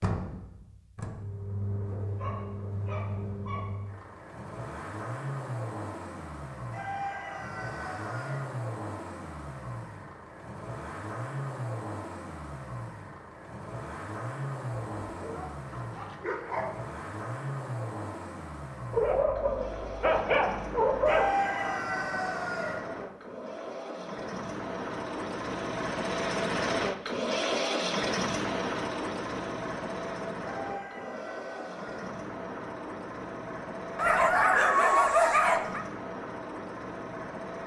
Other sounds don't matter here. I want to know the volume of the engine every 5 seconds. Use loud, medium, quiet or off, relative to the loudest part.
medium, medium, medium, medium, medium, loud, medium, medium.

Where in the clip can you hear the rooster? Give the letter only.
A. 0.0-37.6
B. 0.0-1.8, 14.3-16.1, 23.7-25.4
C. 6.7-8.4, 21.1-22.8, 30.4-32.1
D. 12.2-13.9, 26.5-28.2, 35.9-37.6
C.